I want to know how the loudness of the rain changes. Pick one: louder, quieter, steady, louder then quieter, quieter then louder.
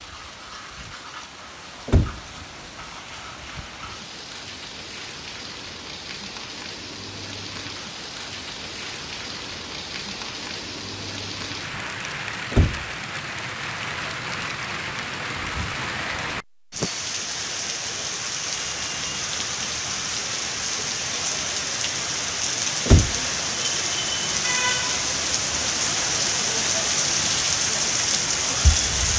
louder.